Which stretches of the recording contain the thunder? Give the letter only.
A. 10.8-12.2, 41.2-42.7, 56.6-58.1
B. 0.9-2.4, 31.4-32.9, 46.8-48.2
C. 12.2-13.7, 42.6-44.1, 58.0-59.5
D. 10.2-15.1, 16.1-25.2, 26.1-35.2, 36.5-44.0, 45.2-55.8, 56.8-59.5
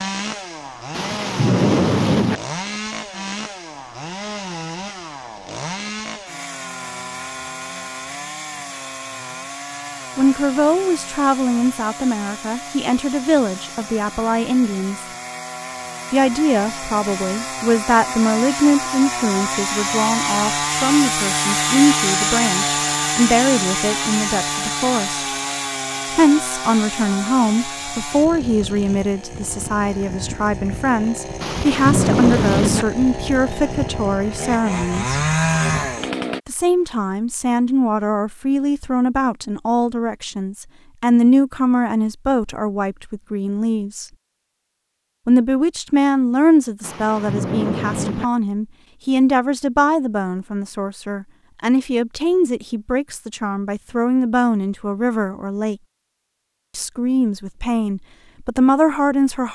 B.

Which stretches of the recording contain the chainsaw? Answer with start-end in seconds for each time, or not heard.
0.0-36.4.